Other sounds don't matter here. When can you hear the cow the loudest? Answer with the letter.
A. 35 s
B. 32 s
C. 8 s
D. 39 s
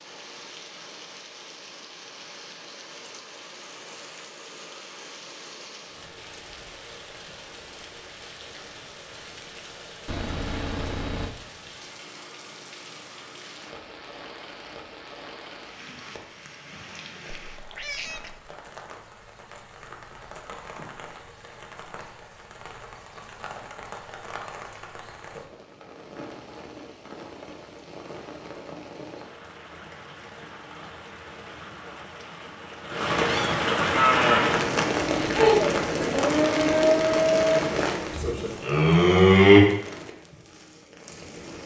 D.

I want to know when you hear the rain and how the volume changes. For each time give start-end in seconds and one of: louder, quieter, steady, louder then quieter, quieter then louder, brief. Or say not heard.
0.0-41.6 louder.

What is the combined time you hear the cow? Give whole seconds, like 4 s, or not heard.
6 s.